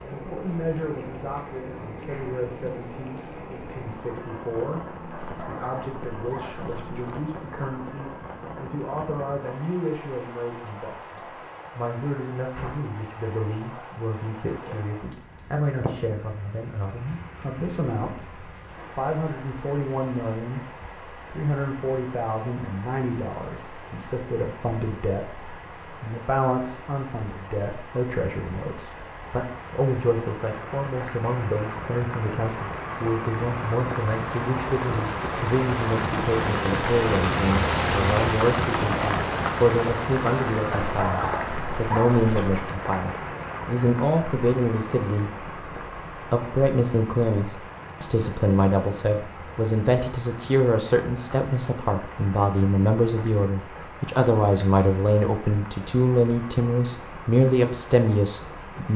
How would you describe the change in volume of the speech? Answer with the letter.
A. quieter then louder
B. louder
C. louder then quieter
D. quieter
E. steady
B.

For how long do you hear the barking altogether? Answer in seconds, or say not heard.
4 s.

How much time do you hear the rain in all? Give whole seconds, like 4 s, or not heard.
59 s.